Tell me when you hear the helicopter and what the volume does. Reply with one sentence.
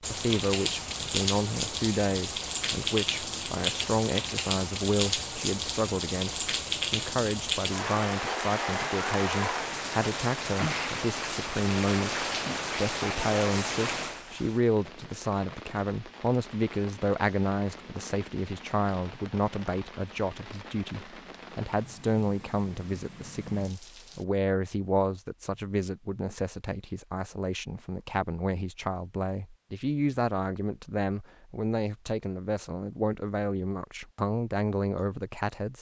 You can't hear the helicopter here.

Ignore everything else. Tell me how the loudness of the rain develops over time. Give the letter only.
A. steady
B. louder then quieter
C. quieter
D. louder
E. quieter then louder
C.